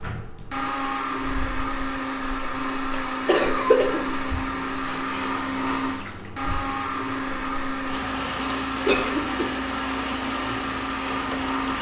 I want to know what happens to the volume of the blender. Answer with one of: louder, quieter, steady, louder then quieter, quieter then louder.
steady.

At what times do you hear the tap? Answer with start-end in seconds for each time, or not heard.
0.0-11.7.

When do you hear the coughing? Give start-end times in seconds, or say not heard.
3.2-4.0, 8.8-9.4.